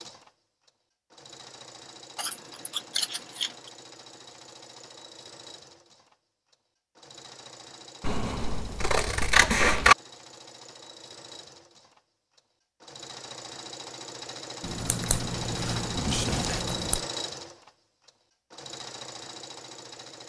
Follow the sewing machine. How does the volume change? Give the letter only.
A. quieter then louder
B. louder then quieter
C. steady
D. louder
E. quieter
D.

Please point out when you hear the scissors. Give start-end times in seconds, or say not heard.
2.1-3.7, 8.0-9.9, 14.6-17.1.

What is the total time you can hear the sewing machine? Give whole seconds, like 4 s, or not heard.
20 s.